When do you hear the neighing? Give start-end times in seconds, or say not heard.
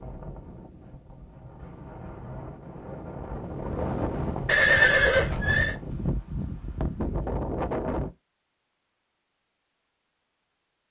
4.5-5.8.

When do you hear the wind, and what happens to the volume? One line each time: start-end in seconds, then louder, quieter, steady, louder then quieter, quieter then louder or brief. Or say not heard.
0.0-8.2 louder.